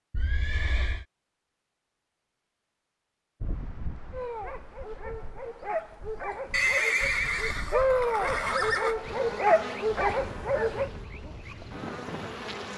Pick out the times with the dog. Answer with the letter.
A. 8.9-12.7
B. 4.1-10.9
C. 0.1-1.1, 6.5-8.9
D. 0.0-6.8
B.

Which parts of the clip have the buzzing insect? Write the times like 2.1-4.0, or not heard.
8.9-12.7.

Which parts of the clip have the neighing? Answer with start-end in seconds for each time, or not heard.
0.1-1.1, 6.5-8.9.